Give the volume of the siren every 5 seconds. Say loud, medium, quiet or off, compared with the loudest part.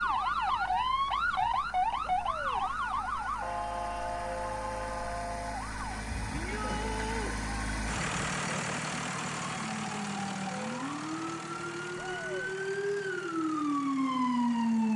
loud, medium, loud.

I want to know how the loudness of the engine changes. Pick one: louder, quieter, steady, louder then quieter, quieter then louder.
louder then quieter.